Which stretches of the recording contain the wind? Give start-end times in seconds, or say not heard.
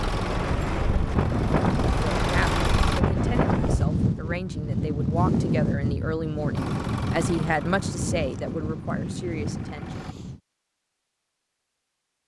0.0-10.4.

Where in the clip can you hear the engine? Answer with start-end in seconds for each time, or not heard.
0.0-3.0, 6.5-10.2.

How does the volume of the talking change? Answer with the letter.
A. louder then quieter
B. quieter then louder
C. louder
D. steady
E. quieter
A.